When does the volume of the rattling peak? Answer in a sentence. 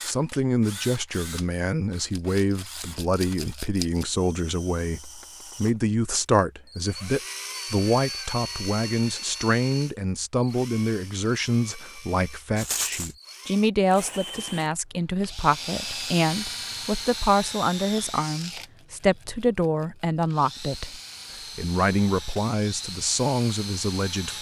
The volume of the rattling peaks at 13 seconds.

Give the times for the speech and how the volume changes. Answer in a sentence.
The speech can be heard from 0.1 to 24.3 s, at a steady volume.